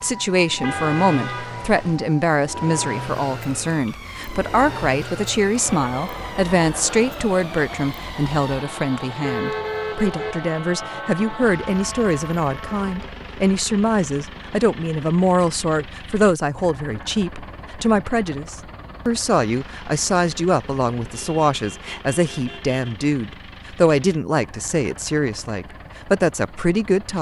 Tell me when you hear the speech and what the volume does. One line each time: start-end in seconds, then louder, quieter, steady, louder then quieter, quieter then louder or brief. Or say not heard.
0.0-27.1 steady.